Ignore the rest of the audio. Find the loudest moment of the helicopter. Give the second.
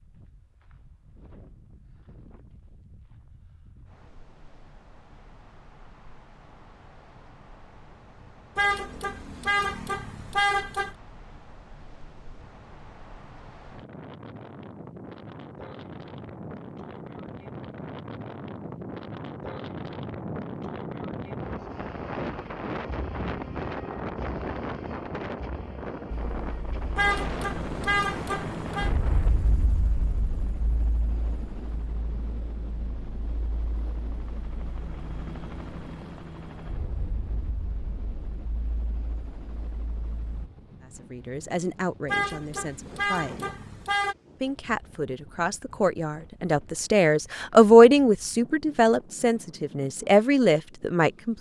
29 s.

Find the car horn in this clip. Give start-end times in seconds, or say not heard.
8.6-10.9, 26.9-28.9, 42.0-44.1.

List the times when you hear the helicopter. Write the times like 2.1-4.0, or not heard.
26.3-40.5.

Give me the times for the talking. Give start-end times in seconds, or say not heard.
41.0-43.5, 44.4-51.3.